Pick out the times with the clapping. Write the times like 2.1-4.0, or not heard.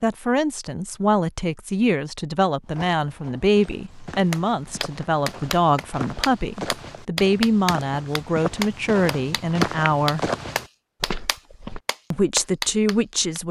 4.3-13.4.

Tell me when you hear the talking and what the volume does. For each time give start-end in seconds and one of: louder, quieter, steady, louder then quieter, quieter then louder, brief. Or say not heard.
0.0-10.3 steady
12.1-13.4 brief.